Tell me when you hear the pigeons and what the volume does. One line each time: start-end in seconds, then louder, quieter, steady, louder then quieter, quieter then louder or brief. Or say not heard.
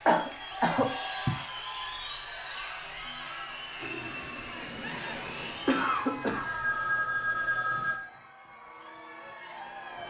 not heard.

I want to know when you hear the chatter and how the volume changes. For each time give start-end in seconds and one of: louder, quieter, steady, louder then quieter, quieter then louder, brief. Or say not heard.
0.0-10.0 quieter.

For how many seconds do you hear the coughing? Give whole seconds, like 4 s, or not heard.
2 s.